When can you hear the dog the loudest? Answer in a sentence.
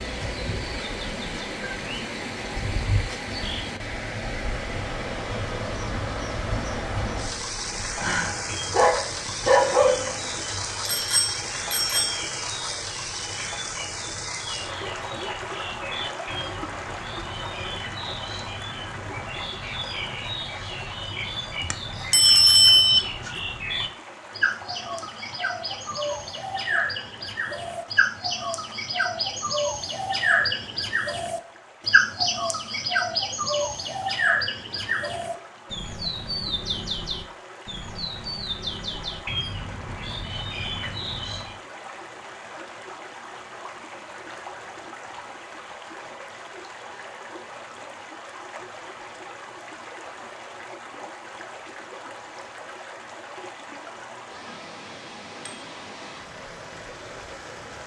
The volume of the dog peaks at 10 seconds.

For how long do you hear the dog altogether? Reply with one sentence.
You can hear the dog for 3 seconds altogether.